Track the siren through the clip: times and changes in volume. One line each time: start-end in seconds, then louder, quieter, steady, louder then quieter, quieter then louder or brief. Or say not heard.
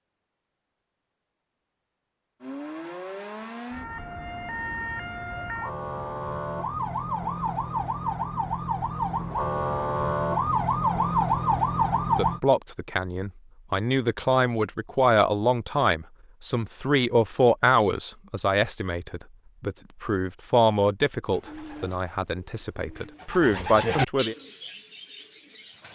2.4-12.4 louder.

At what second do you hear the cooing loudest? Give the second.
24 s.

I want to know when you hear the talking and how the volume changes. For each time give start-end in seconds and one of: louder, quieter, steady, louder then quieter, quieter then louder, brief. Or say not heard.
12.2-24.4 steady.